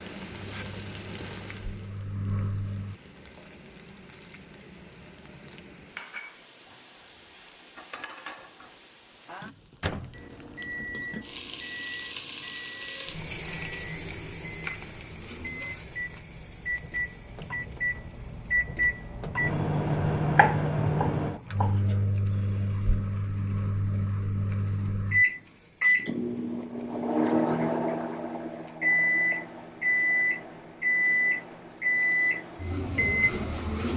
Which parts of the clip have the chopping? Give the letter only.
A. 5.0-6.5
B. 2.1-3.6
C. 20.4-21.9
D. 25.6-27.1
C.